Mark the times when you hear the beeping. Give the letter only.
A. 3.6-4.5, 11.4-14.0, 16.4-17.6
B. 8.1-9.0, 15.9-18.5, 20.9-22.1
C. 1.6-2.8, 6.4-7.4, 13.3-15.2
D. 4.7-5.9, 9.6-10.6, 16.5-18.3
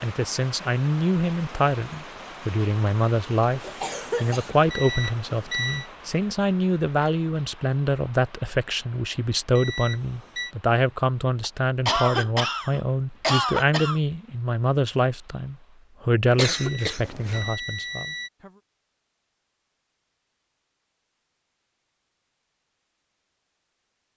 D.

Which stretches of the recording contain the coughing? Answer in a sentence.
You can hear the coughing from 3.6 to 4.5 s, from 11.4 to 14.0 s and from 16.4 to 17.6 s.